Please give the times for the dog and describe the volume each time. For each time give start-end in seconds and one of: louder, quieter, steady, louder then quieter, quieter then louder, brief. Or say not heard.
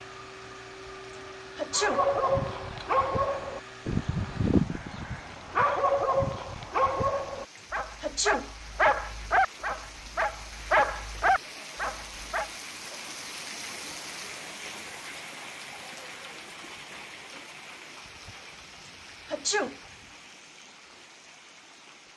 1.7-12.5 steady.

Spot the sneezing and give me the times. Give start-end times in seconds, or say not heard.
1.6-2.0, 8.0-8.5, 19.2-19.8.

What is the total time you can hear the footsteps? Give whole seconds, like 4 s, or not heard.
not heard.